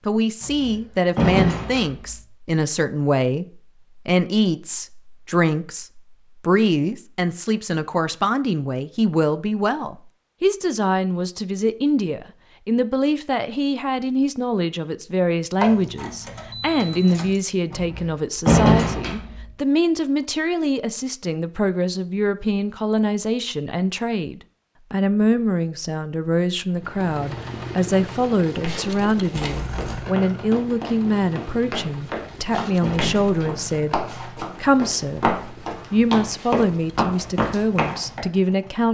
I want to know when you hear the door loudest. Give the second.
19 s.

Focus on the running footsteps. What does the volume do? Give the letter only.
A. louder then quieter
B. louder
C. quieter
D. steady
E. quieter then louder
B.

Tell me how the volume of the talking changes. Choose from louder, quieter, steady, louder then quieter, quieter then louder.
steady.